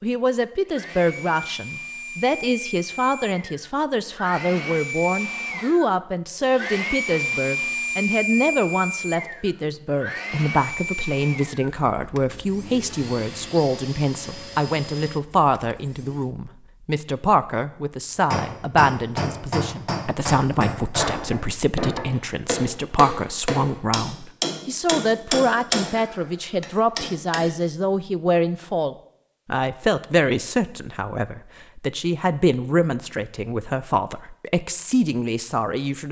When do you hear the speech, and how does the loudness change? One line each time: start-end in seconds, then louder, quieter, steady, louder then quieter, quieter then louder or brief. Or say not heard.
0.0-36.0 steady.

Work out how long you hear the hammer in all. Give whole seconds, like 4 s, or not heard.
9 s.